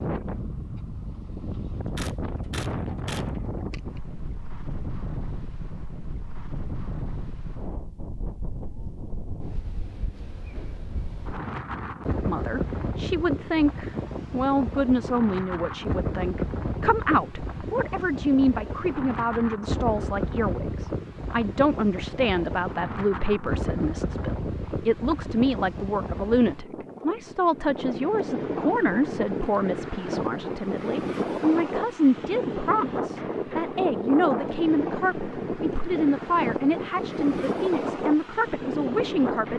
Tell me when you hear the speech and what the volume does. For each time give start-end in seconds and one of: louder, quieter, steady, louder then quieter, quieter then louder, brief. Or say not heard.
12.2-39.5 steady.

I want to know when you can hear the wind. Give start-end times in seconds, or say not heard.
0.0-39.5.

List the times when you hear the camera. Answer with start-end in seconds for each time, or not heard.
1.9-3.2.